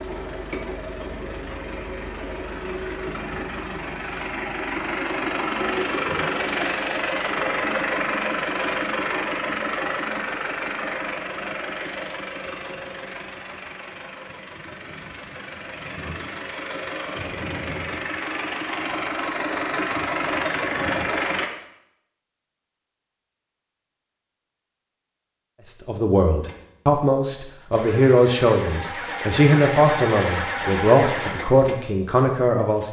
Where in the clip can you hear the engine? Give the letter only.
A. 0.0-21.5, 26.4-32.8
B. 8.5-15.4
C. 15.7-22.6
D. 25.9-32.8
A.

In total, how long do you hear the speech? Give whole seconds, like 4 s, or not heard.
7 s.